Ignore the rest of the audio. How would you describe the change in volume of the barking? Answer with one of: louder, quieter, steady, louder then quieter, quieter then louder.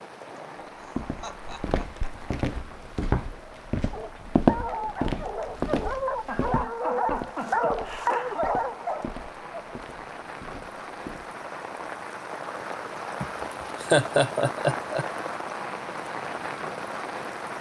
louder.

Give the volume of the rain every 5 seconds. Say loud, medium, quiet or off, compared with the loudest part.
medium, medium, loud, loud.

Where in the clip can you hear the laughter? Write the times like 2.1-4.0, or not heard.
0.8-2.4, 6.2-8.4, 13.2-15.1.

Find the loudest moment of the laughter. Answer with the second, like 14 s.
14 s.